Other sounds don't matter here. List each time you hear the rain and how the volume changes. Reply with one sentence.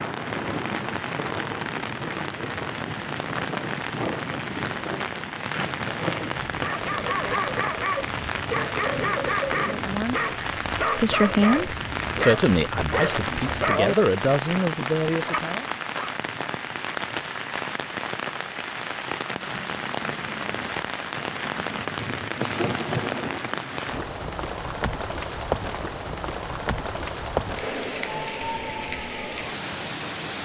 You can hear the rain from 0.0 to 30.3 s, at a steady volume.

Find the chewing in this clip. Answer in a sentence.
The chewing can't be heard in this clip.